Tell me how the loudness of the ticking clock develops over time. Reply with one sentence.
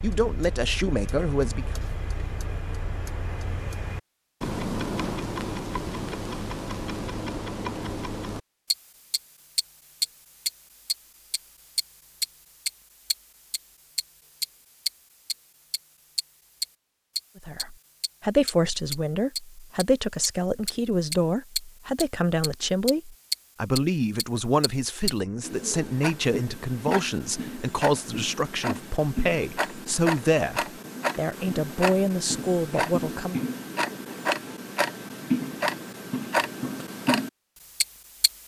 The volume of the ticking clock goes up.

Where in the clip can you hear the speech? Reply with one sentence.
The speech can be heard from 0.0 to 1.8 s and from 17.4 to 33.4 s.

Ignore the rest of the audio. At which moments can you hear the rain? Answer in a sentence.
The rain can't be heard in this clip.